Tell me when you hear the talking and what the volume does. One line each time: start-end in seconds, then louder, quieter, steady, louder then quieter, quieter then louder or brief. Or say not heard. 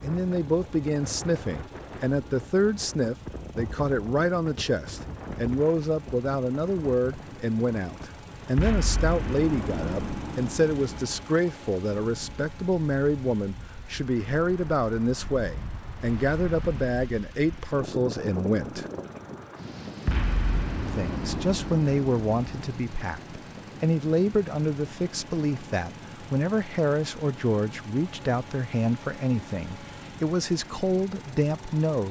0.0-18.9 steady
20.9-32.0 steady.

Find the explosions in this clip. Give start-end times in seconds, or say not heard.
8.6-11.2, 20.1-22.7.